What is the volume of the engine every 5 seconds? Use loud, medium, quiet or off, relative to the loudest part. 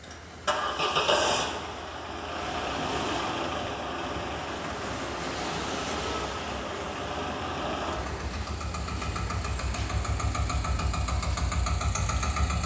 loud, medium, loud.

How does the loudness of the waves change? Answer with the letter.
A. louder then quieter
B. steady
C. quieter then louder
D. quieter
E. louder
A.